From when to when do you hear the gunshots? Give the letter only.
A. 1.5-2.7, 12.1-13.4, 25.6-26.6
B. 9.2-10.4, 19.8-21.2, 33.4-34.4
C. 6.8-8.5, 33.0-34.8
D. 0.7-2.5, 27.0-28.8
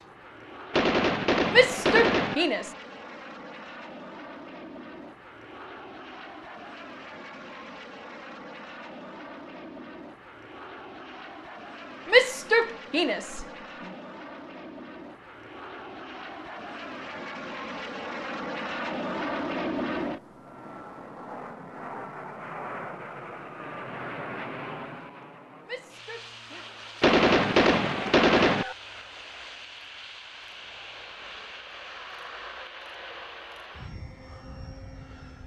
D.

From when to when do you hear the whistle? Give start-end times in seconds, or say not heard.
not heard.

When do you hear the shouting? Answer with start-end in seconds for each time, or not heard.
1.5-2.7, 12.1-13.4, 25.6-26.6.